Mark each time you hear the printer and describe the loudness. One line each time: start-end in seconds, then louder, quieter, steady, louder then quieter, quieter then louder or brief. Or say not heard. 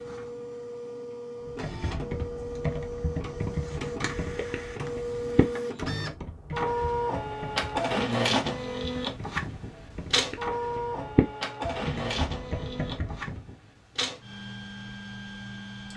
0.0-15.9 louder then quieter.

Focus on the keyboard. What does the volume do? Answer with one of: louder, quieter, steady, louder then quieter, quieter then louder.
quieter then louder.